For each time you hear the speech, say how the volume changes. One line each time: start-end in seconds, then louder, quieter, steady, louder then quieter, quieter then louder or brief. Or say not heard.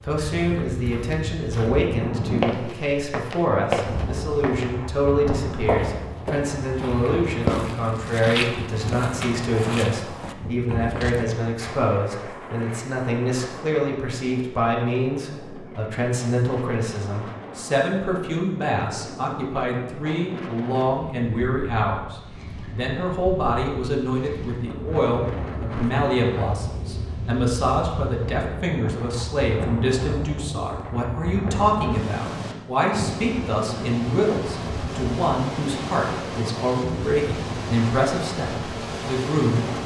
0.0-39.8 steady.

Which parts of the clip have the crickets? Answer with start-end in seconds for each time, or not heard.
not heard.